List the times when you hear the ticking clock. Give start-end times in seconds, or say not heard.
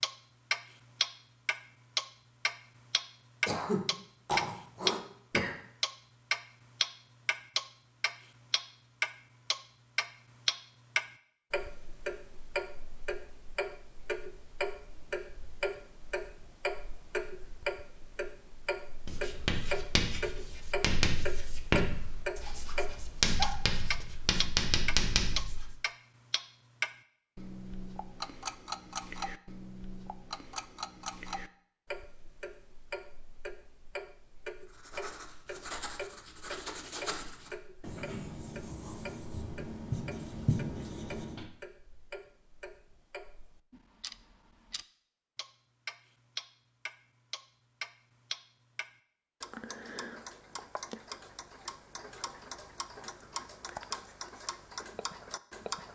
0.0-55.8.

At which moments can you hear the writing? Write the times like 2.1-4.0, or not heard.
19.0-25.8, 34.6-41.5.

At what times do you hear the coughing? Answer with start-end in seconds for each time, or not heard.
3.5-5.5.